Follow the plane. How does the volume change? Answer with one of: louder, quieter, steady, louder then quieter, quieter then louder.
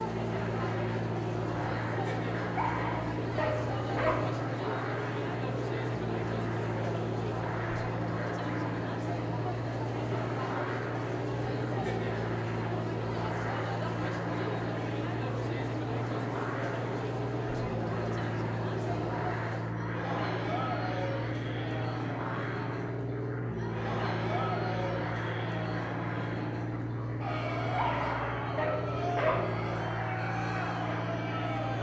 steady.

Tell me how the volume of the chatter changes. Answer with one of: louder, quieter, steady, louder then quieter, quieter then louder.
steady.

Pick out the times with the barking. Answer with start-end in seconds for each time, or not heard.
2.5-4.2, 27.8-29.4.